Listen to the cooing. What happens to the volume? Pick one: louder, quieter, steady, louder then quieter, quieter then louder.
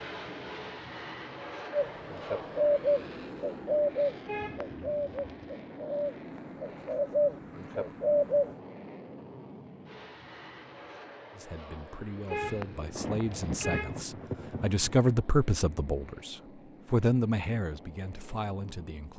quieter then louder.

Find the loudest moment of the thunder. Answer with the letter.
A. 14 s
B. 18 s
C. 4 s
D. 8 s
A.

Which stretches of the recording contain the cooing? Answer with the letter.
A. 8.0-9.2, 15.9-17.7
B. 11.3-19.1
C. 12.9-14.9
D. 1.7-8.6
D.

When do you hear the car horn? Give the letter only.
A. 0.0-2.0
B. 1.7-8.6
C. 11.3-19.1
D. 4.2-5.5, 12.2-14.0
D.